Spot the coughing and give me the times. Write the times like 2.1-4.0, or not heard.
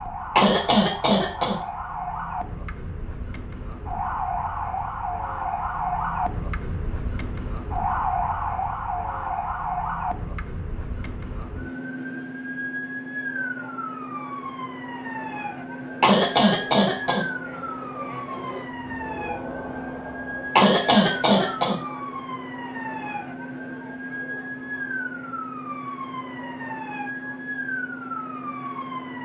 0.3-1.6, 16.0-17.2, 20.6-21.8.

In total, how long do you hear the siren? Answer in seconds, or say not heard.
29 s.